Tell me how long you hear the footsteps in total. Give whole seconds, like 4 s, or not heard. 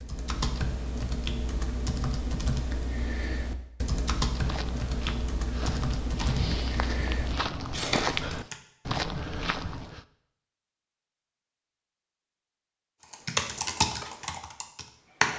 6 s.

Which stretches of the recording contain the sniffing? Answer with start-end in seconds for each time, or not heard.
not heard.